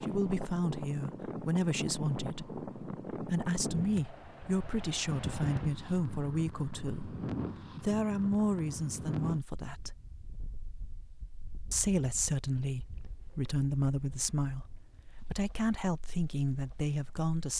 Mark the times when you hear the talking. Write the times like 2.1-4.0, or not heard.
0.0-9.9, 11.7-17.5.